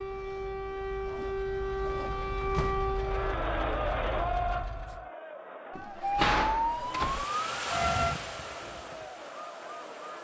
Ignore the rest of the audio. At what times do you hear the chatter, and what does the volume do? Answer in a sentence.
The chatter can be heard from 3.0 to 10.1 s, getting quieter.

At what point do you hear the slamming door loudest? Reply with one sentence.
The volume of the slamming door peaks at 6 seconds.